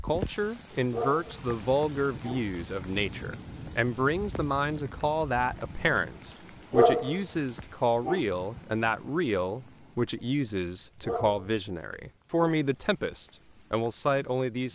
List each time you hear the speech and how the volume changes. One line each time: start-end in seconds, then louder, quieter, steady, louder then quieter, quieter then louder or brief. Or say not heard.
0.0-14.7 steady.